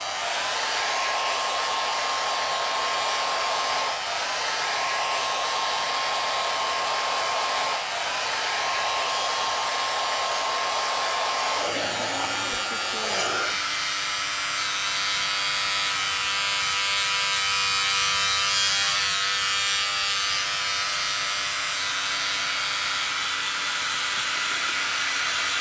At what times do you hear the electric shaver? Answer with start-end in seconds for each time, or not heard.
0.0-25.5.